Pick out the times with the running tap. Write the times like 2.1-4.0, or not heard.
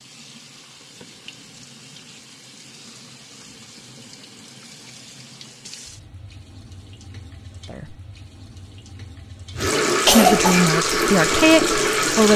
0.0-12.3.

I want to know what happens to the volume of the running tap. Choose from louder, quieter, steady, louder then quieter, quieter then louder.
louder.